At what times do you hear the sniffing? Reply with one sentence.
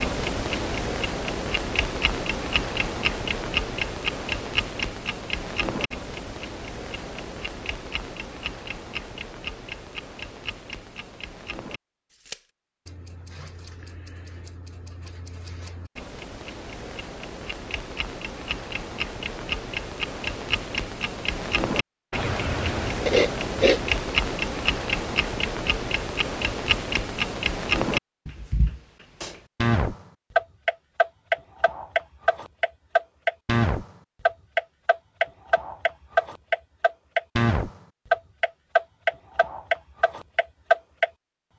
The sniffing can be heard from 22.1 to 23.9 s.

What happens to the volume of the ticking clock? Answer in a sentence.
The volume of the ticking clock goes down, then up.